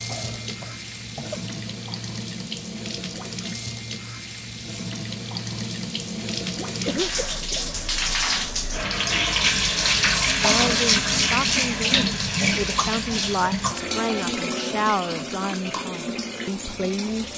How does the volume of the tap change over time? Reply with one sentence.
The volume of the tap goes up, then down.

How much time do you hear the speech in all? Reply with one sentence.
The speech can be heard for 7 seconds in total.